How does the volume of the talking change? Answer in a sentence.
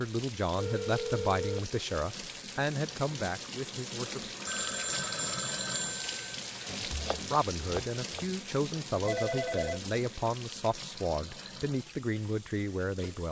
The volume of the talking stays about the same.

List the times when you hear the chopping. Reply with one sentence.
You can hear the chopping from 6.7 to 8.3 s.